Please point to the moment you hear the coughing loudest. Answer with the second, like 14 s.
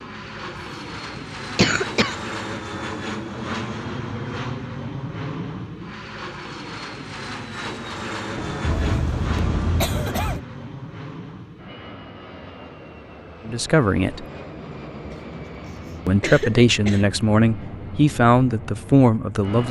2 s.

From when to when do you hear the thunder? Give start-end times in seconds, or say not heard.
8.3-10.4.